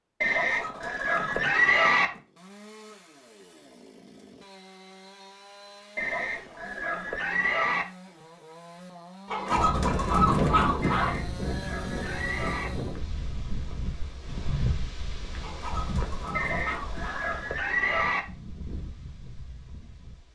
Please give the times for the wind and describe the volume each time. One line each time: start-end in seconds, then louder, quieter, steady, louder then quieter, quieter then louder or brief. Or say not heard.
9.5-20.3 quieter.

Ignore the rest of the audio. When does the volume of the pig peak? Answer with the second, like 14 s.
2 s.